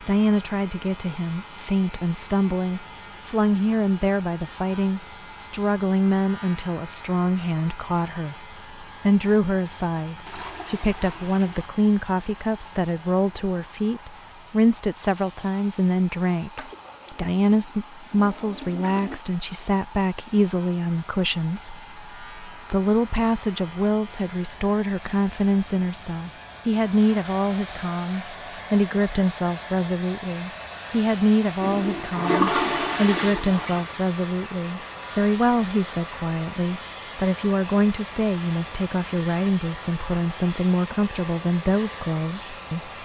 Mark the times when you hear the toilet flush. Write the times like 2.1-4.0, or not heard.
10.2-11.7, 16.6-19.2, 31.6-34.0.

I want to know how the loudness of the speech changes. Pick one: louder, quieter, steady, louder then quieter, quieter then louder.
steady.